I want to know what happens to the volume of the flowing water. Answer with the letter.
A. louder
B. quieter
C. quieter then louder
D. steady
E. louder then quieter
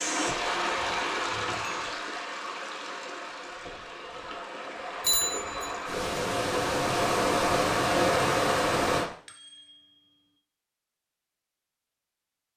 C.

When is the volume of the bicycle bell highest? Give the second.
5 s.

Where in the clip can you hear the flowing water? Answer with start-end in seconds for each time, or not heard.
0.0-9.1.